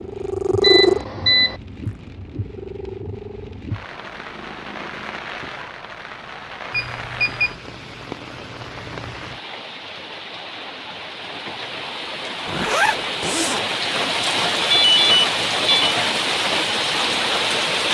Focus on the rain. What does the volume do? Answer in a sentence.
The loudness of the rain goes up.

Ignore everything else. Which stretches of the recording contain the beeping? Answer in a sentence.
You can hear the beeping from 0.6 to 1.6 s, from 6.7 to 7.5 s and from 14.7 to 15.9 s.